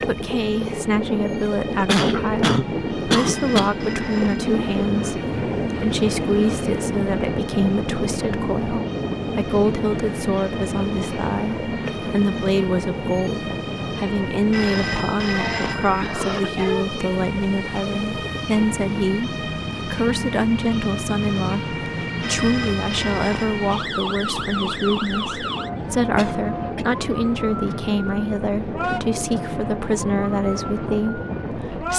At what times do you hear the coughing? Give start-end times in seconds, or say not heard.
1.4-3.7, 15.3-16.9, 26.1-26.9.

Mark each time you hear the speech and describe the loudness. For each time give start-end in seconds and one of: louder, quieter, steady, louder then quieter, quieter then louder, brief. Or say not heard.
0.0-31.9 steady.